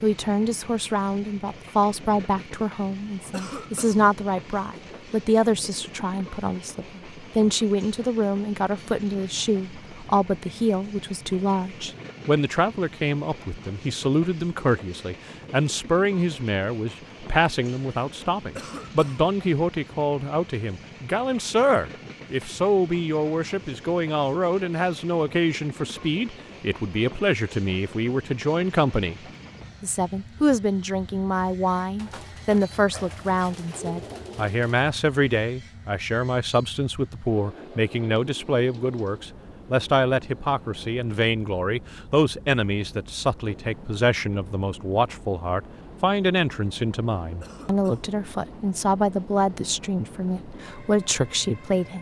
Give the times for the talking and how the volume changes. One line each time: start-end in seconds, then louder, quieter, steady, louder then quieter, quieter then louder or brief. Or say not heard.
0.0-29.2 steady
29.8-51.9 steady.